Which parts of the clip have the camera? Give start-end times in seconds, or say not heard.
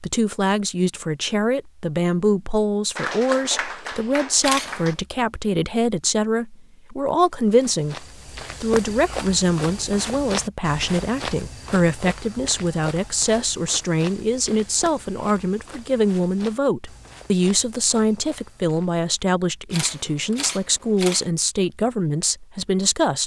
4.4-5.0, 19.7-21.3.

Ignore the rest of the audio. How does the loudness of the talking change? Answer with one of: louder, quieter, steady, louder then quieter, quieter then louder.
steady.